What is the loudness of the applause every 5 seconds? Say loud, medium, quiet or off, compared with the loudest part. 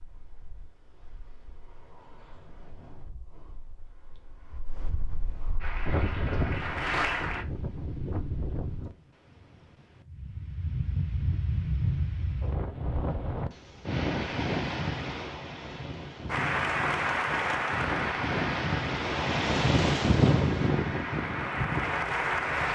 off, loud, off, loud, loud.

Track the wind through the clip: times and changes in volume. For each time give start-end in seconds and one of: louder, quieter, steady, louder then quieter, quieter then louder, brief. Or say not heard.
0.0-22.7 louder.